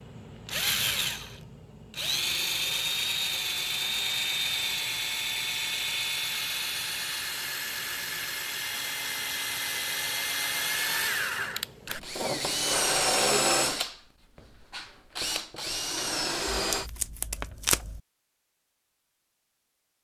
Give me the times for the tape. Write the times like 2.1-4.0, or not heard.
16.6-18.0.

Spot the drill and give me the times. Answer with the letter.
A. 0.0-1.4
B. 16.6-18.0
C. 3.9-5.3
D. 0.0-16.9
D.